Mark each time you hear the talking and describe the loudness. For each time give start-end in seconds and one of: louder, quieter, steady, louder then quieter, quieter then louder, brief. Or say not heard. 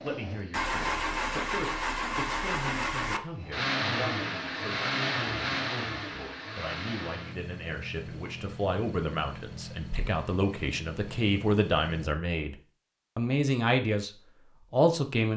0.0-12.6 louder
13.2-15.3 brief.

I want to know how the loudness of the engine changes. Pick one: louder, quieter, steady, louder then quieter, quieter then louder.
quieter.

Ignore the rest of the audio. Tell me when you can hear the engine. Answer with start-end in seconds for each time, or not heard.
0.0-12.2.